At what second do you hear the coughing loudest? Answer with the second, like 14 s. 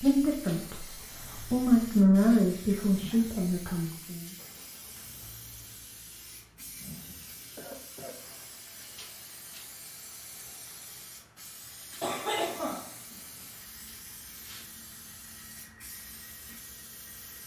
12 s.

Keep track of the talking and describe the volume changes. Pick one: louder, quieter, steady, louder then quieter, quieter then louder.
louder then quieter.